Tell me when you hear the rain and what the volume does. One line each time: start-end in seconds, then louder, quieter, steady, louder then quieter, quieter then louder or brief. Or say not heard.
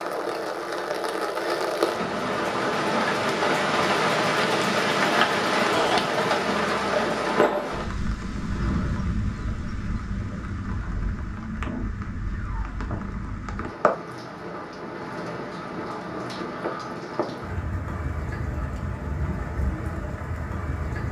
0.0-21.0 quieter.